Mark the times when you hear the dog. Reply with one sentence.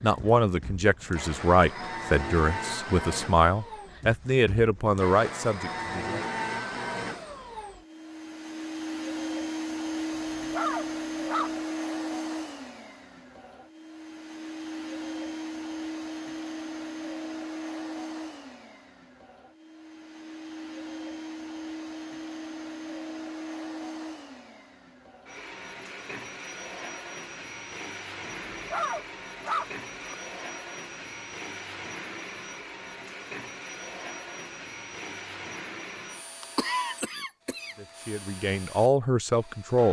You can hear the dog from 10.2 to 11.5 s and from 28.5 to 30.1 s.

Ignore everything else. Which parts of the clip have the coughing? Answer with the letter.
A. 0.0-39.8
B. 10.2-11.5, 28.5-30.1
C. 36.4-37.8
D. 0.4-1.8
C.